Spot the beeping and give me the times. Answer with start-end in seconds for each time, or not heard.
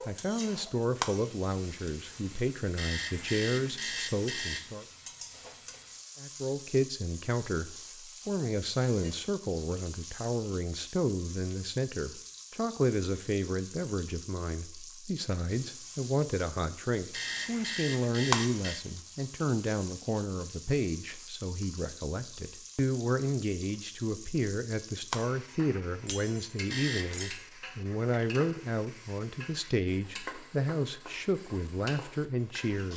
2.8-4.8, 17.1-18.8, 26.7-27.4.